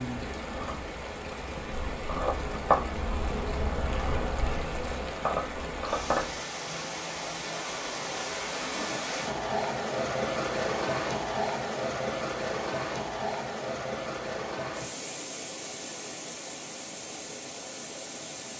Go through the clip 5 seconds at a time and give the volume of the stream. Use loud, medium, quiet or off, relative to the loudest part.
medium, loud, loud, medium.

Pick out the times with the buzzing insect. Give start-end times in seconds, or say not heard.
0.2-6.4.